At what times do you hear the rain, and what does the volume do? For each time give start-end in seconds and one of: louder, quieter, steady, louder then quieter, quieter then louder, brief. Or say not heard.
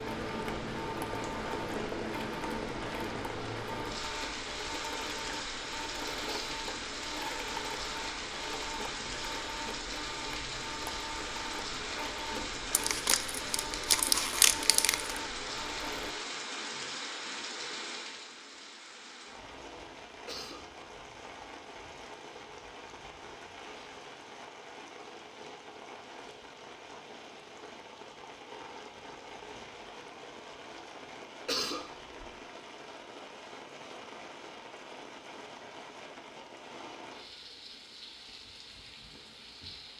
0.0-39.9 quieter.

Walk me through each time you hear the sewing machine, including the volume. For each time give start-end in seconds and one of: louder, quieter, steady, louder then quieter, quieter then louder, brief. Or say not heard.
0.0-16.1 steady.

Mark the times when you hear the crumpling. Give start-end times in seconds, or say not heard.
12.7-15.2.